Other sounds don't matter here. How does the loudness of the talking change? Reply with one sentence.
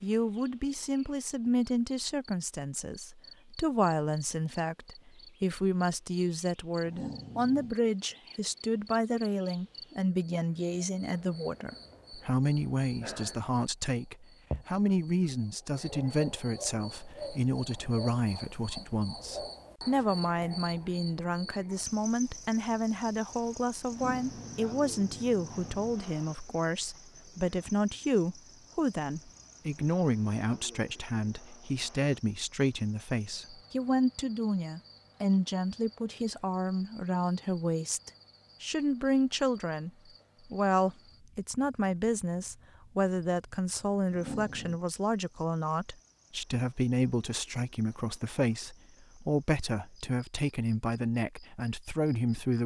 The loudness of the talking stays about the same.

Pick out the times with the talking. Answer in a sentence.
The talking can be heard from 0.0 to 39.9 s and from 40.5 to 52.6 s.